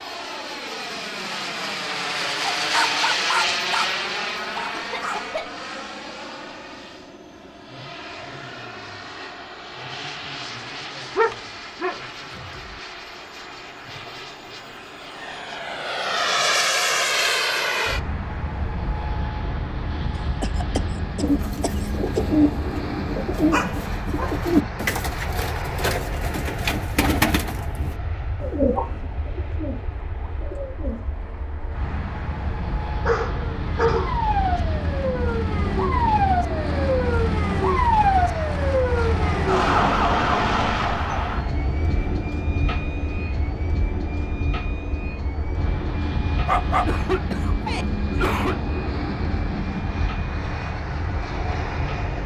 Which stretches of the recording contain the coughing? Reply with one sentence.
The coughing can be heard from 4.7 to 5.5 s, from 20.4 to 22.2 s and from 46.6 to 48.5 s.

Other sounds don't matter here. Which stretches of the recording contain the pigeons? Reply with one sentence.
The pigeons can be heard from 21.2 to 31.0 s.